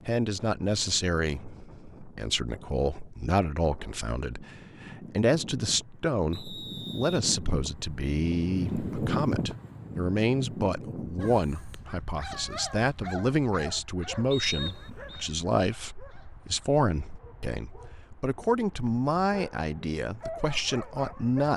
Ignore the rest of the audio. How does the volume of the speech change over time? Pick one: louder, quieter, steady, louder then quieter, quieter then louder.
steady.